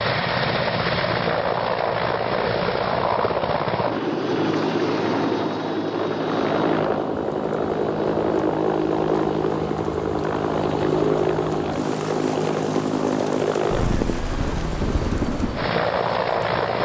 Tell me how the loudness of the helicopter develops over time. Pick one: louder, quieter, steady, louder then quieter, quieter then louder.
steady.